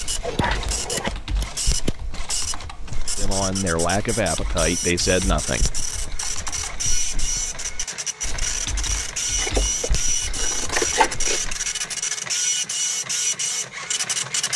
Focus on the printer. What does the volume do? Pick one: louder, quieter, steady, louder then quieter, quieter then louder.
louder.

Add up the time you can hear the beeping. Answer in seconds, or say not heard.
2 s.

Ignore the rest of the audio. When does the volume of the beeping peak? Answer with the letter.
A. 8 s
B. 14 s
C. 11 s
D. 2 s
D.